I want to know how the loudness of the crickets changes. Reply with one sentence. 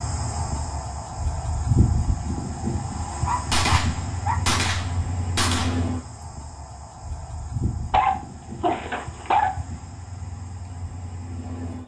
The loudness of the crickets goes down.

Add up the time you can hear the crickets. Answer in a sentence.
The crickets can be heard for 12 seconds in total.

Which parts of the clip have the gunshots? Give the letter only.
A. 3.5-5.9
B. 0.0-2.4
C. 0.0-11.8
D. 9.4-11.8
A.